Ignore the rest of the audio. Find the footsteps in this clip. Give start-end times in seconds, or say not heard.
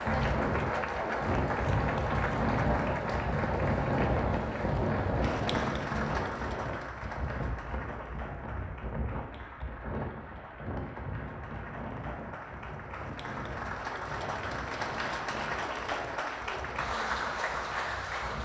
not heard.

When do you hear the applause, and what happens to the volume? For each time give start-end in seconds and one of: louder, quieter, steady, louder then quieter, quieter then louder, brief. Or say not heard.
0.0-18.4 quieter then louder.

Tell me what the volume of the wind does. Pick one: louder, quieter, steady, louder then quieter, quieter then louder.
quieter.